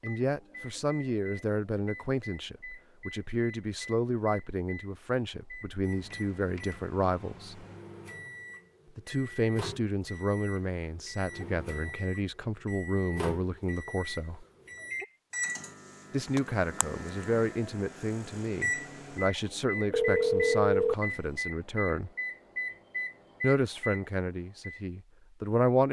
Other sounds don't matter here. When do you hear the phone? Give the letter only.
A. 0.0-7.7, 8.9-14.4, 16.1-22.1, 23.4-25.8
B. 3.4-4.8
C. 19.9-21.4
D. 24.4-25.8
C.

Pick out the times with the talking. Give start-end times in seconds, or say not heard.
0.0-7.7, 8.9-14.4, 16.1-22.1, 23.4-25.8.